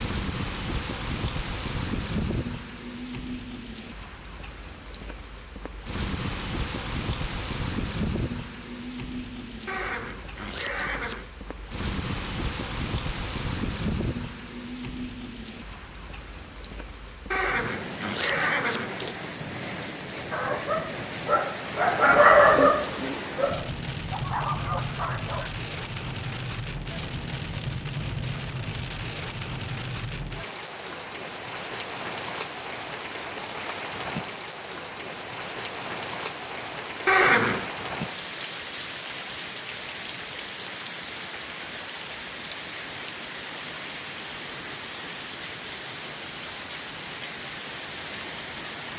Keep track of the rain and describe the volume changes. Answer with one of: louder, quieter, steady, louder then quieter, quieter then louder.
steady.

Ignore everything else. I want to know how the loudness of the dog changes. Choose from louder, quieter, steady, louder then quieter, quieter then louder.
louder then quieter.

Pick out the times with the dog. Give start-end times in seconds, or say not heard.
20.3-25.5.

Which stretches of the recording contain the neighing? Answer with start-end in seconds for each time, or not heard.
9.7-11.2, 17.3-19.1, 37.0-37.7.